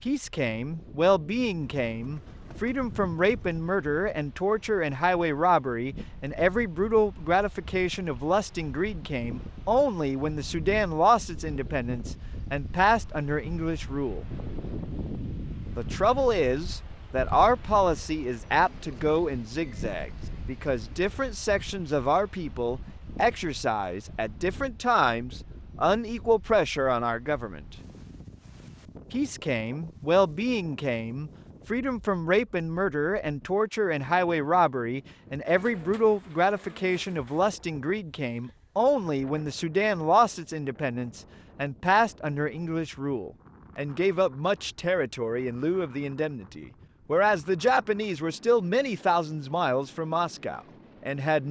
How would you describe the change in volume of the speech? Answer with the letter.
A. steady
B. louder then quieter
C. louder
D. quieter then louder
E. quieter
A.